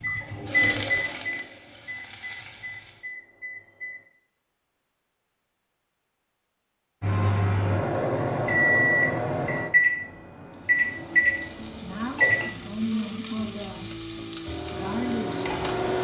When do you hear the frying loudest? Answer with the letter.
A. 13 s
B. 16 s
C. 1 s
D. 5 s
A.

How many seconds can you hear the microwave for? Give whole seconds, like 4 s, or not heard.
11 s.